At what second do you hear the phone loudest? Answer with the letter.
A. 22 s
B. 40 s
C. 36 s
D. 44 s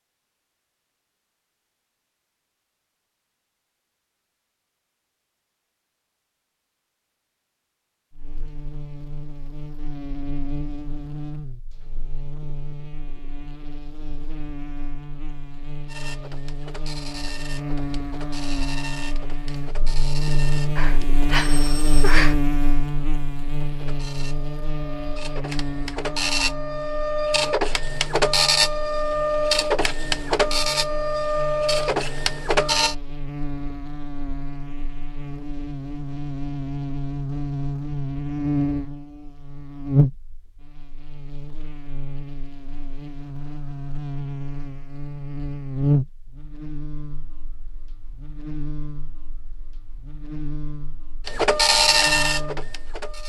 A.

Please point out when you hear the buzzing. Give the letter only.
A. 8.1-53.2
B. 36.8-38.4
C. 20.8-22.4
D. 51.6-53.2
A.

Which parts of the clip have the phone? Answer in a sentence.
The phone can be heard from 20.8 to 22.4 s.